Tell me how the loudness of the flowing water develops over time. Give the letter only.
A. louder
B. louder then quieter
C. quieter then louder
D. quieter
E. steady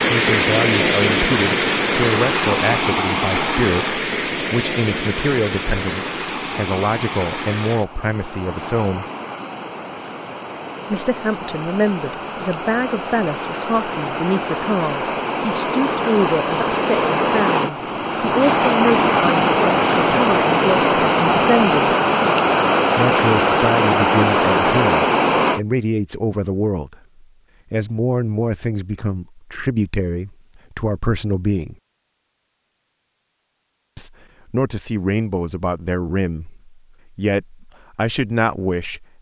C.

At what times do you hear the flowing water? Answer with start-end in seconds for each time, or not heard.
0.0-25.6.